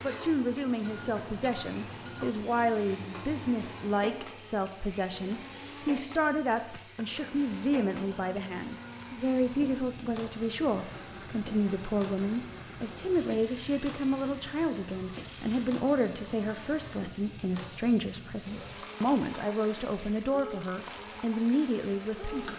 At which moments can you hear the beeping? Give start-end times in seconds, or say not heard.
0.8-2.2, 8.1-8.9, 16.9-18.4.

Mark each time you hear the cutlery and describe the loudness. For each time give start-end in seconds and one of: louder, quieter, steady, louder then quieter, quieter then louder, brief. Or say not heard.
not heard.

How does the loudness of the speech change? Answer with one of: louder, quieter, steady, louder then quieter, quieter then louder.
steady.